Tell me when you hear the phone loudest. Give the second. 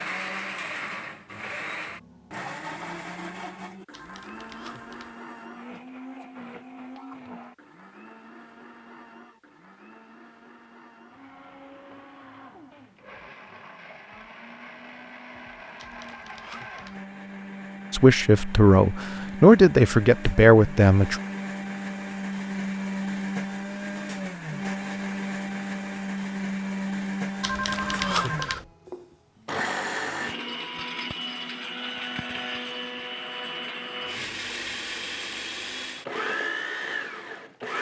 28 s.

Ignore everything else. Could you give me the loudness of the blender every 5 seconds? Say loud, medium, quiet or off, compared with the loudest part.
medium, quiet, quiet, medium, loud, loud, loud, loud.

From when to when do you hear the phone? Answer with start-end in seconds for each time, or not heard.
3.9-5.2, 15.8-17.0, 27.4-28.6.